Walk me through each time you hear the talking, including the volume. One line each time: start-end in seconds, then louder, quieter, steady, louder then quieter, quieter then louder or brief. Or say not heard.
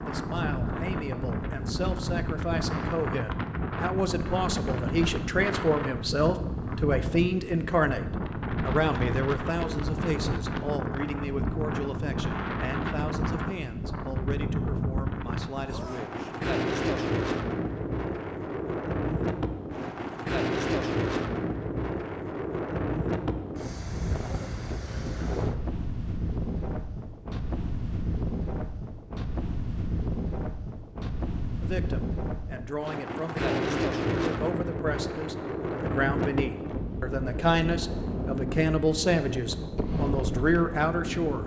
0.1-16.3 louder then quieter
31.6-41.4 louder.